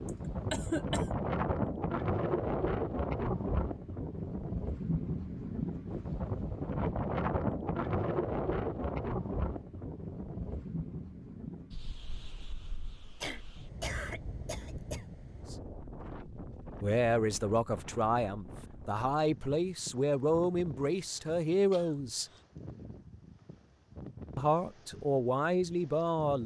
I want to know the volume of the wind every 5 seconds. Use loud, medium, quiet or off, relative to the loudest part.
loud, loud, medium, quiet, quiet, quiet.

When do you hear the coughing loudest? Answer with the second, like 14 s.
1 s.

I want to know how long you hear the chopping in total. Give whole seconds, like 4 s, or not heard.
not heard.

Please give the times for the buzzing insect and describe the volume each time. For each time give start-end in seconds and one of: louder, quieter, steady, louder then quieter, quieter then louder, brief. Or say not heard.
not heard.